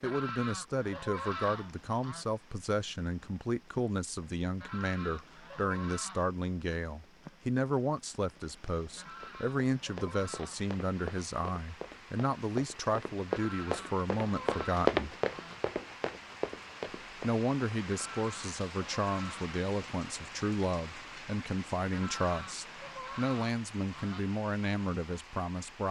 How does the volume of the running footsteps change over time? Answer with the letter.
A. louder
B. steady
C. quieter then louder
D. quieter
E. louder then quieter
E.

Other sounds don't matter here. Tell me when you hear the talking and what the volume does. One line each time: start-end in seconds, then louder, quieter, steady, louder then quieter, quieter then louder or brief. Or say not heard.
0.0-15.1 steady
17.1-25.8 steady.